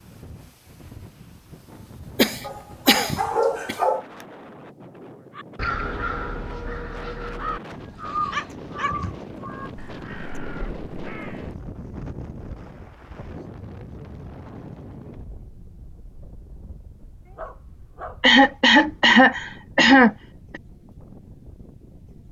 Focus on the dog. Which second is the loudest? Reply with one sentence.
The loudest moment of the dog is at 3 seconds.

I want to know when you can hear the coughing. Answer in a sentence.
The coughing can be heard from 2.1 to 3.8 s and from 18.2 to 20.6 s.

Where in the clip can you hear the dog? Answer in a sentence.
The dog can be heard from 2.4 to 4.0 s, from 7.7 to 8.9 s and from 17.2 to 18.2 s.